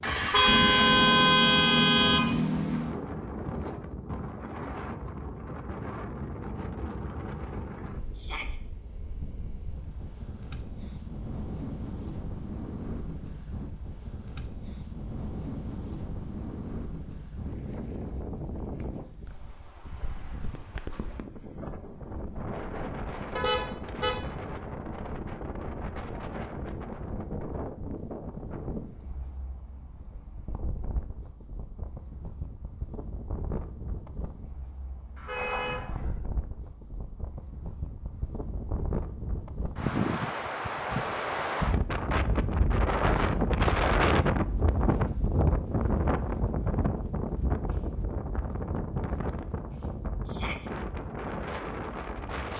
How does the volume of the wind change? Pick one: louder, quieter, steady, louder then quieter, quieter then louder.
louder.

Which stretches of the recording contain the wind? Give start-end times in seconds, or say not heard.
0.0-52.5.